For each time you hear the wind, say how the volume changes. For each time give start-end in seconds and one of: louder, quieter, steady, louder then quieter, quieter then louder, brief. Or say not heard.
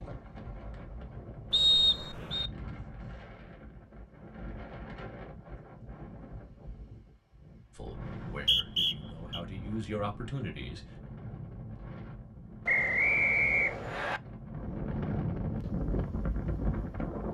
0.0-17.2 louder.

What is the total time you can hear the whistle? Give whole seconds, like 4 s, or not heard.
4 s.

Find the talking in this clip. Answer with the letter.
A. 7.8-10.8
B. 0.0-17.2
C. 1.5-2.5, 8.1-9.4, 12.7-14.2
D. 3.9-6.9
A.